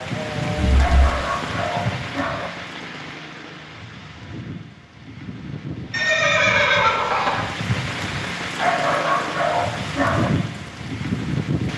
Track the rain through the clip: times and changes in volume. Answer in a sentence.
You can hear the rain from 0.0 to 11.7 s, getting quieter then louder.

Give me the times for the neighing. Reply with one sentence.
The neighing can be heard from 0.6 to 1.6 s and from 5.9 to 7.5 s.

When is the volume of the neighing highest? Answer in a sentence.
The loudest moment of the neighing is at 7 seconds.